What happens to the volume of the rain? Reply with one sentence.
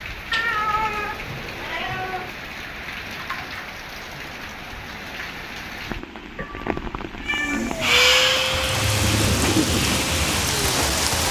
The loudness of the rain goes up.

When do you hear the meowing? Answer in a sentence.
The meowing can be heard from 0.3 to 2.3 s and from 6.3 to 8.4 s.